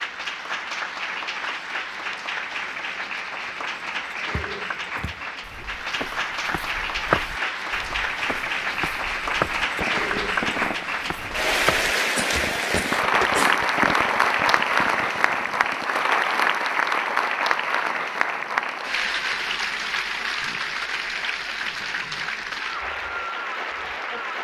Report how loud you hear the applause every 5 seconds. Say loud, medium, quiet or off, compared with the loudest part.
medium, medium, loud, loud, medium.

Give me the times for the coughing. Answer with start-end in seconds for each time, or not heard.
12.2-13.6.